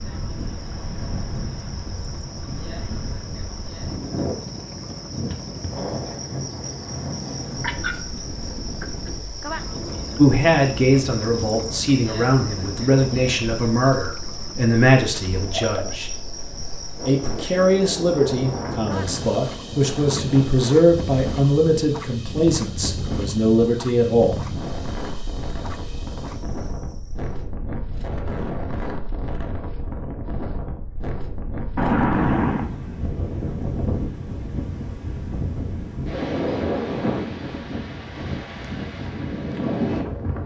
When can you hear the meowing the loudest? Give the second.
32 s.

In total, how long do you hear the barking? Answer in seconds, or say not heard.
not heard.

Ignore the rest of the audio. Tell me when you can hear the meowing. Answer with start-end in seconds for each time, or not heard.
7.5-9.2, 15.1-16.0, 31.8-32.7.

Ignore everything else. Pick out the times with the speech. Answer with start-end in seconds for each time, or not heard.
10.2-16.1, 17.1-24.4.